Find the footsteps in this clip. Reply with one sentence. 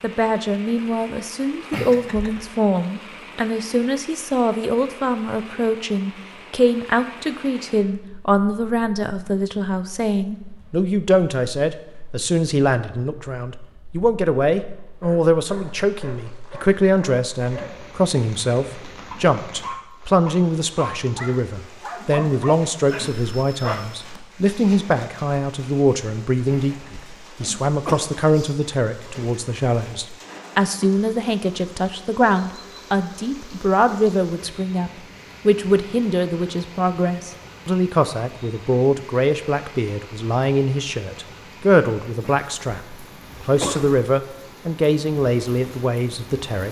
You can't hear the footsteps here.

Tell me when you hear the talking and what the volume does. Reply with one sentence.
You can hear the talking from 0.0 to 46.6 s, at a steady volume.